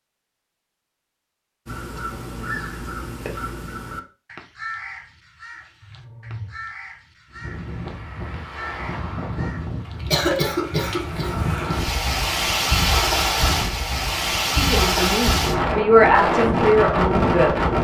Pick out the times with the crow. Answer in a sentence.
The crow can be heard from 1.6 to 11.8 s.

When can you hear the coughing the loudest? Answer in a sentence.
The loudest moment of the coughing is at 10 seconds.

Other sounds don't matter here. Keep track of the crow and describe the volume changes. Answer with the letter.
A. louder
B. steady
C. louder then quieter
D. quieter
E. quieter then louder
D.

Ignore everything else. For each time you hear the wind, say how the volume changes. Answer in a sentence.
The wind can be heard from 7.3 to 17.7 s, getting louder.